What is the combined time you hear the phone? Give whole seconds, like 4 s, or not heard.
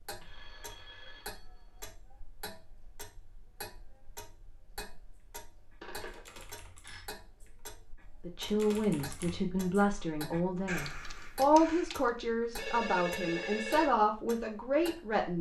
4 s.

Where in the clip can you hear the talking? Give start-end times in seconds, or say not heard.
8.2-15.3.